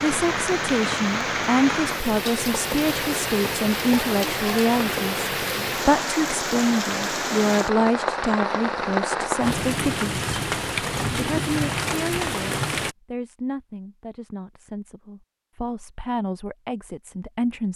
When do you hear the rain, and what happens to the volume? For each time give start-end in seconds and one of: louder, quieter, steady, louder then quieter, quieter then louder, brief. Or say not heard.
0.0-12.9 steady.